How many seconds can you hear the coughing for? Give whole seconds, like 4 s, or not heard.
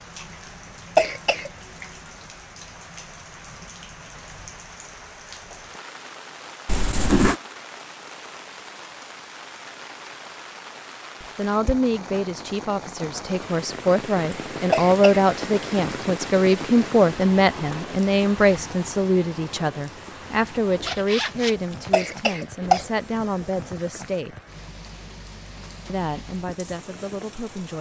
2 s.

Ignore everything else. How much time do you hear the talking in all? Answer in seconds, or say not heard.
15 s.